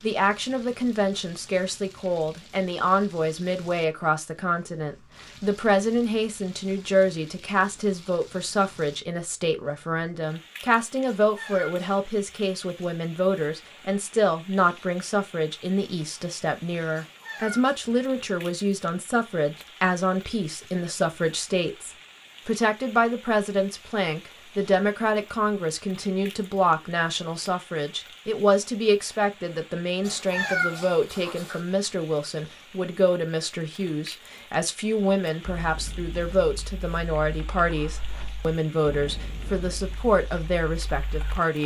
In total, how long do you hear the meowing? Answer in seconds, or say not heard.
3 s.